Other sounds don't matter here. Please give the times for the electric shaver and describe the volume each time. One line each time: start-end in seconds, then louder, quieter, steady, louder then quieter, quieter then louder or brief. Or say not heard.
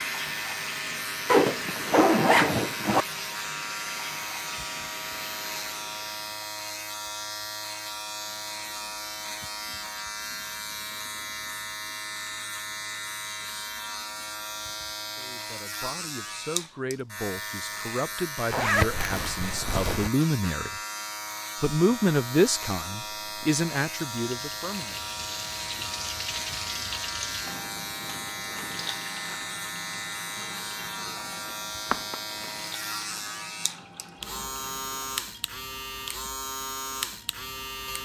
0.0-38.0 steady.